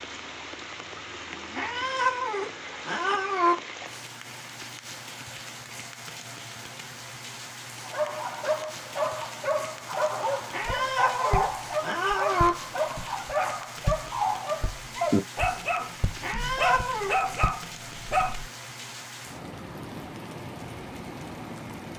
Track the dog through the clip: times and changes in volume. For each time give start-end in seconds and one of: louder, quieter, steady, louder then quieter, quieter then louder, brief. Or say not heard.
7.8-18.5 steady.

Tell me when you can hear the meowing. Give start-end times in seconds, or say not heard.
1.6-3.5, 10.5-12.6, 16.2-17.1.